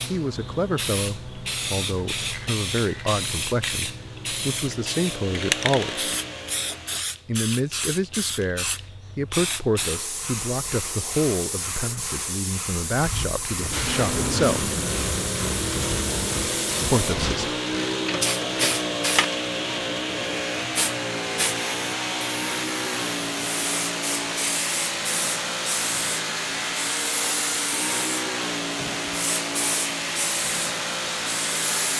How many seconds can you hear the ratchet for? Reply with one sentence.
The ratchet can be heard for 6 seconds in total.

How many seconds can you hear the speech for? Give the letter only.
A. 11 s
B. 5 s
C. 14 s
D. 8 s
C.